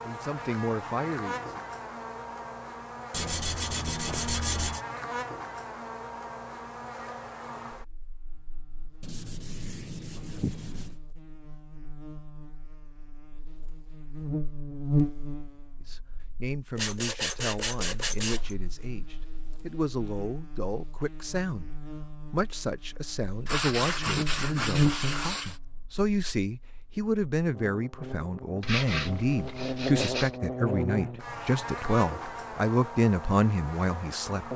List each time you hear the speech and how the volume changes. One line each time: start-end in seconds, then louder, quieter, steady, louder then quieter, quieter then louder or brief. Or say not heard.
0.0-1.6 brief
15.8-34.5 louder.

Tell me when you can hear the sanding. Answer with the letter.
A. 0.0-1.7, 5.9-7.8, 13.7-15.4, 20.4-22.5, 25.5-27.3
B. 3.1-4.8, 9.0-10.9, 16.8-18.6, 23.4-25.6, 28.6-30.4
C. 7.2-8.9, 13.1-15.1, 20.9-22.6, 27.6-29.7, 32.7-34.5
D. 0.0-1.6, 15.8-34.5
B.